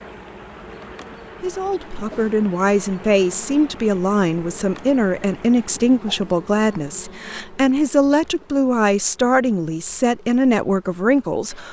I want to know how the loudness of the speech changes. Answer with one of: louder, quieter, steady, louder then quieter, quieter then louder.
steady.